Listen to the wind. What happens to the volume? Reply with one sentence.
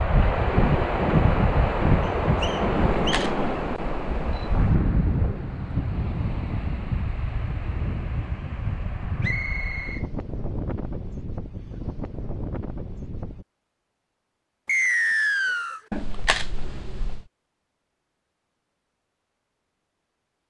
The volume of the wind goes down.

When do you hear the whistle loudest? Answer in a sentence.
The loudest moment of the whistle is at 15 seconds.